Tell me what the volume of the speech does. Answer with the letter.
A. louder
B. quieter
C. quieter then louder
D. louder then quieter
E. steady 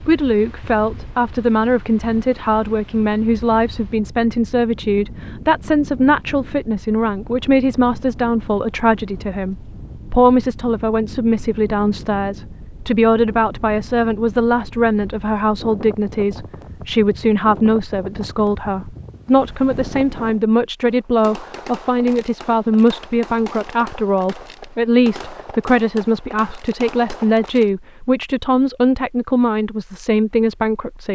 E.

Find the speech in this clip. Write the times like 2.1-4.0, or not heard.
0.1-31.1.